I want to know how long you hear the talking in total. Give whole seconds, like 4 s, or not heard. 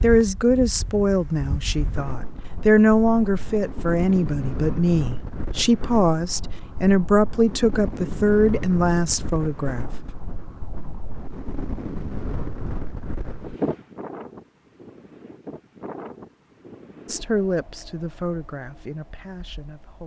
13 s.